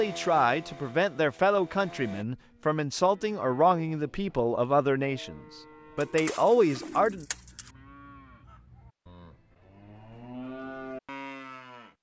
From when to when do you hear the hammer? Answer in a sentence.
You can't hear the hammer here.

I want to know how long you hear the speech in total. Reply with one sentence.
You can hear the speech for 7 seconds altogether.